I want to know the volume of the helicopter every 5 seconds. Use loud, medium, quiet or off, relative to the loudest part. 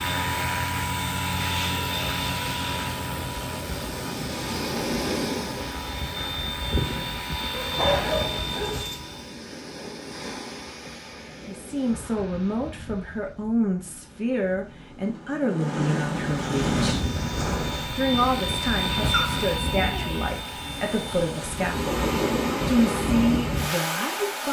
loud, loud, off, loud, medium.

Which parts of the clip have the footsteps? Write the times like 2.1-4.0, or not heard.
not heard.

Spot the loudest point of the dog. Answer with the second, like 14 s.
8 s.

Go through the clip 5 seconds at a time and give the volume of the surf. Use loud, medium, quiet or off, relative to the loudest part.
medium, medium, quiet, loud, loud.